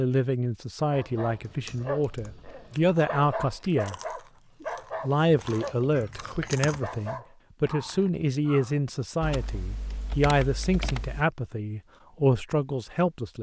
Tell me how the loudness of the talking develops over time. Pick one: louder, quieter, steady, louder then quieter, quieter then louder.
steady.